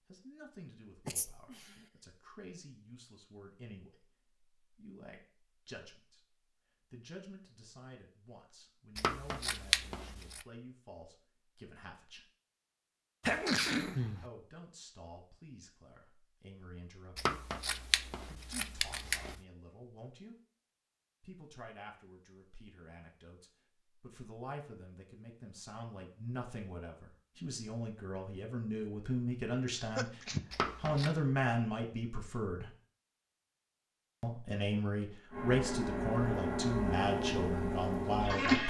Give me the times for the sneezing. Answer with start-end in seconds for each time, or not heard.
1.1-1.9, 13.2-14.2, 29.6-30.4.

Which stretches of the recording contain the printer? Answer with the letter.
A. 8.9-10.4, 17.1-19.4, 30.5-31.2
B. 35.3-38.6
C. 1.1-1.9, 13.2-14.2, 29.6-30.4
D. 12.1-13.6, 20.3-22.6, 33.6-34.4
B.